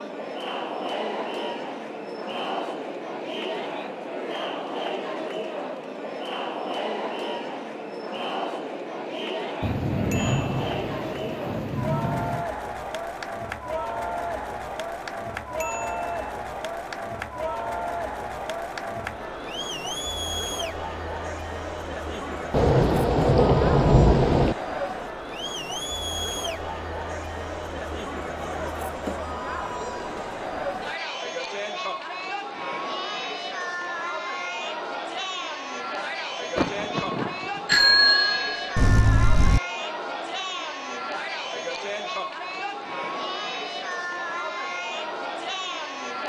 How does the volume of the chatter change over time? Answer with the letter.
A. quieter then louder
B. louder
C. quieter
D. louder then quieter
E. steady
E.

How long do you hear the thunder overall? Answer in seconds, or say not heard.
6 s.